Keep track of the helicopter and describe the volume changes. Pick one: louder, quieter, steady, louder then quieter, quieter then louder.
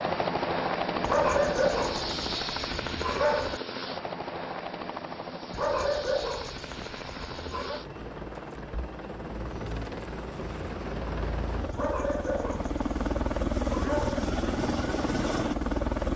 quieter then louder.